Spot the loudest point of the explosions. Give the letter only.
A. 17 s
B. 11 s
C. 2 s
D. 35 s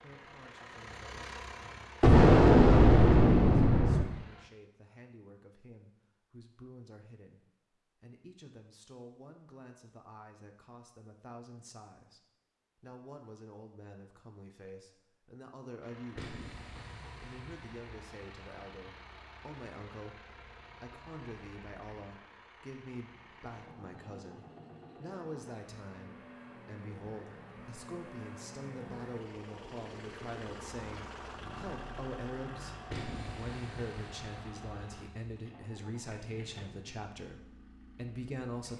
C.